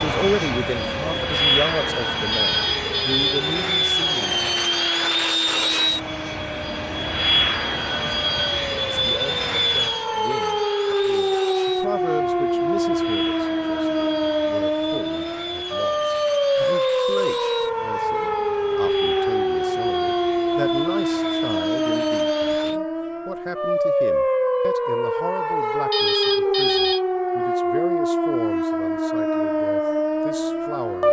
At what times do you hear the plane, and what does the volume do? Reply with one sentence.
The plane can be heard from 0.0 to 22.8 s, getting quieter.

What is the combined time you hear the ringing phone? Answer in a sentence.
You can hear the ringing phone for 2 seconds altogether.